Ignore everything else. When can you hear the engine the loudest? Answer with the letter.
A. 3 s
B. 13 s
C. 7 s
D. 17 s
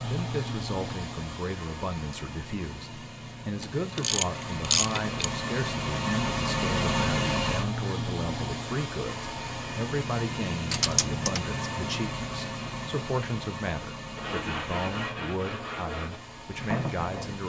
C.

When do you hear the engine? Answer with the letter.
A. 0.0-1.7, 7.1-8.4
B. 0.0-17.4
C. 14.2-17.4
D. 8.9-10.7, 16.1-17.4
B.